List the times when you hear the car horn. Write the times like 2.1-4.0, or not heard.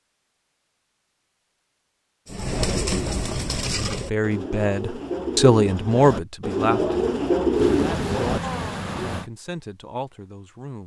not heard.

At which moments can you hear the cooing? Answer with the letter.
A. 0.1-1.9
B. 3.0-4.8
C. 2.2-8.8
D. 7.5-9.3
C.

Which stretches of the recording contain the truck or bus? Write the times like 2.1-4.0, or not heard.
7.5-9.3.